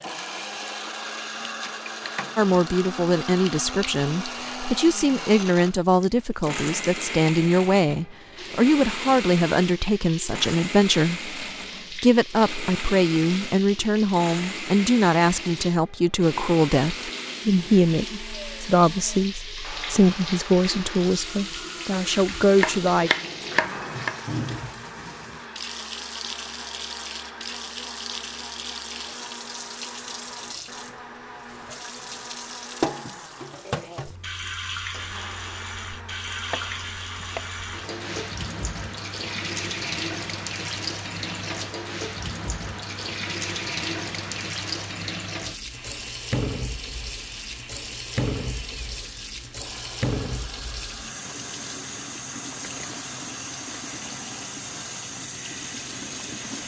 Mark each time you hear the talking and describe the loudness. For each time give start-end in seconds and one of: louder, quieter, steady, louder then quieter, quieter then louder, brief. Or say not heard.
2.4-23.1 steady.